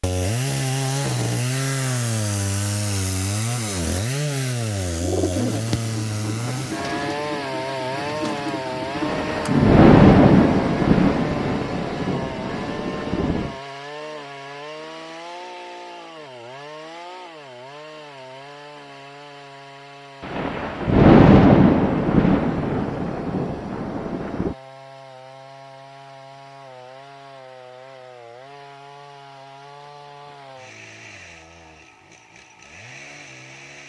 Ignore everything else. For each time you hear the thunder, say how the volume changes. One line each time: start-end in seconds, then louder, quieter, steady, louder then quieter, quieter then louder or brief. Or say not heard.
8.9-13.6 quieter
20.2-24.6 quieter.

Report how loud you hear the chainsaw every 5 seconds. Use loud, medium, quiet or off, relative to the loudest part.
loud, loud, medium, quiet, quiet, quiet, quiet.